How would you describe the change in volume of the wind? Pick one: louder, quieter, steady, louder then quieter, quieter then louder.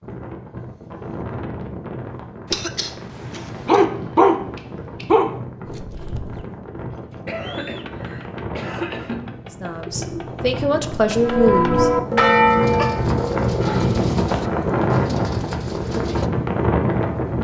louder.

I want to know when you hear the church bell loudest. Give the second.
12 s.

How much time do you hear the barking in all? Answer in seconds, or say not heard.
2 s.